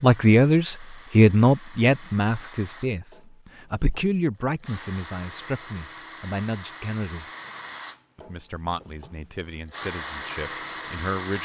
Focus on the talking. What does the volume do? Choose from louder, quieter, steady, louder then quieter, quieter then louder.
quieter.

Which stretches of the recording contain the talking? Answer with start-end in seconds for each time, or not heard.
0.0-7.2, 8.2-11.4.